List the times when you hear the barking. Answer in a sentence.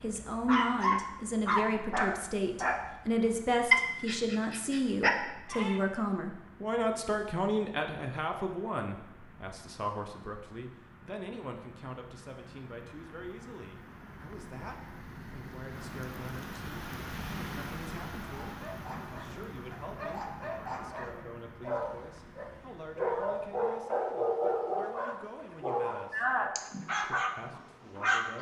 You can hear the barking from 0.0 to 5.8 s and from 18.2 to 28.3 s.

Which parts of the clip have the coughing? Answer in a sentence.
The coughing can't be heard in this clip.